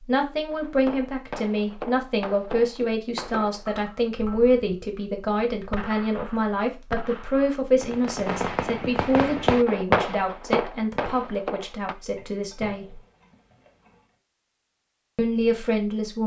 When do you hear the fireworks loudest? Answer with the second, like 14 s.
10 s.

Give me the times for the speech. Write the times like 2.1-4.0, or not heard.
0.0-13.0, 15.2-16.2.